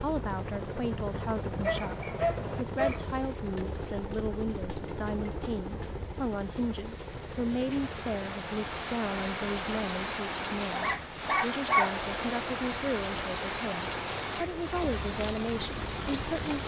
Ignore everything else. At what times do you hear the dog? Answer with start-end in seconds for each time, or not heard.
1.6-3.4, 10.7-12.6.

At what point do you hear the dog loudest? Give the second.
12 s.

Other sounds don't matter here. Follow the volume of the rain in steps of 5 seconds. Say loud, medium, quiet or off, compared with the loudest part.
quiet, medium, loud, loud.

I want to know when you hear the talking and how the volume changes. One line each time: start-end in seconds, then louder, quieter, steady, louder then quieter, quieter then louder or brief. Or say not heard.
0.0-16.6 steady.